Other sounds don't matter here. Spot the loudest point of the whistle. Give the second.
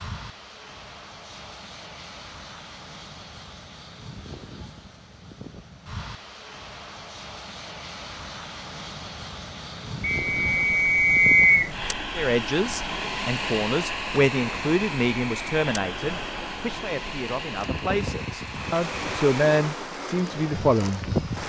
11 s.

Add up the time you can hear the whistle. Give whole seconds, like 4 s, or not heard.
2 s.